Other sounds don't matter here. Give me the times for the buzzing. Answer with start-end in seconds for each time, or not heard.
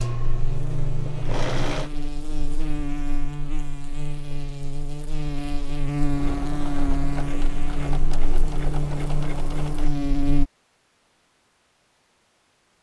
0.0-10.4.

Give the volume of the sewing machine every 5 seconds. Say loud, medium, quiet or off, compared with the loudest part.
loud, medium, off.